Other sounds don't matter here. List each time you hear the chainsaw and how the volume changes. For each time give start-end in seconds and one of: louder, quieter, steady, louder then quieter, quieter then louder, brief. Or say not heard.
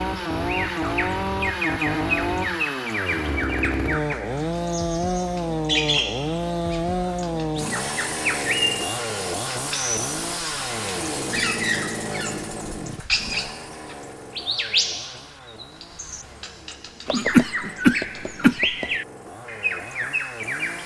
0.0-20.8 quieter.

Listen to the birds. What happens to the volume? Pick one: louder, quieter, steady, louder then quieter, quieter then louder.
steady.